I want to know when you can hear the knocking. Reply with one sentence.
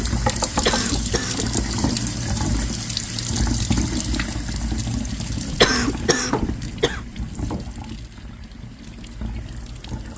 You can hear the knocking from 0.1 to 0.9 s and from 6.2 to 7.7 s.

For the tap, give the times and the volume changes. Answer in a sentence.
You can hear the tap from 0.0 to 10.1 s, getting quieter.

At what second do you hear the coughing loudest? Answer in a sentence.
The volume of the coughing peaks at 6 seconds.